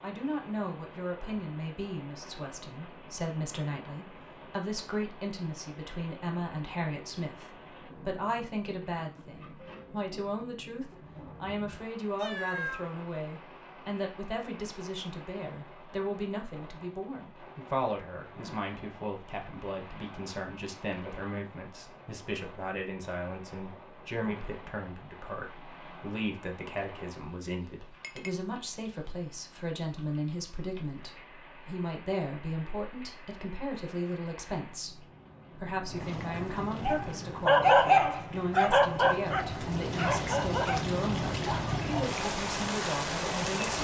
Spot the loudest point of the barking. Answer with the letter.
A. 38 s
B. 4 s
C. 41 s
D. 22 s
A.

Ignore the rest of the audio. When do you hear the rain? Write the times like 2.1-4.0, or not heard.
0.0-43.7.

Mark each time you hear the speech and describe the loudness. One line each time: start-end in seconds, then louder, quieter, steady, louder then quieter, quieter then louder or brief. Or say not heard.
0.0-43.7 steady.